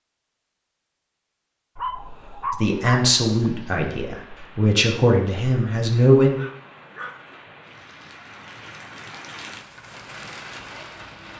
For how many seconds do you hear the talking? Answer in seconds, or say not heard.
4 s.